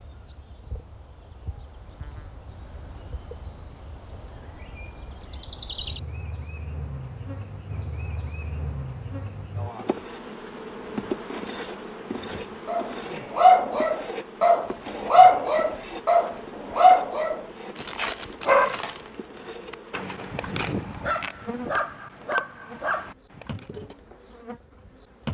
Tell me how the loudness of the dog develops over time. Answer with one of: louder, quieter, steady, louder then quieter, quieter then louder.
quieter.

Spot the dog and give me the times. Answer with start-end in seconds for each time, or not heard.
12.7-23.6.